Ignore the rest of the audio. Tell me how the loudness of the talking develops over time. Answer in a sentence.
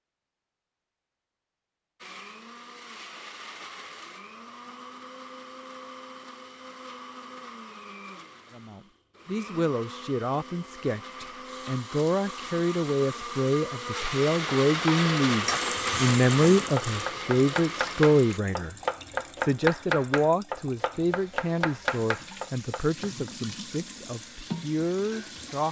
The volume of the talking goes up, then down.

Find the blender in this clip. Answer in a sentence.
You can hear the blender from 2.0 to 18.4 s.